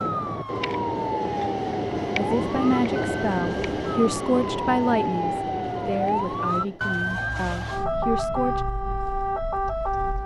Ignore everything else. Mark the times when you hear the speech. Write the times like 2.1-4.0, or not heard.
2.1-8.6.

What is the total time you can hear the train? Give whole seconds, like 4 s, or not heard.
7 s.